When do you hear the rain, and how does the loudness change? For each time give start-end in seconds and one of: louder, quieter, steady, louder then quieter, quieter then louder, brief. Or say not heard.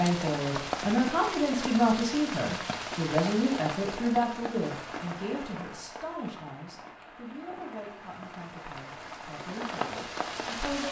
0.0-10.8 quieter then louder.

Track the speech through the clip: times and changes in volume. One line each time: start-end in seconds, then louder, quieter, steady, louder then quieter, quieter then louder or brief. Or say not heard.
0.0-10.8 quieter.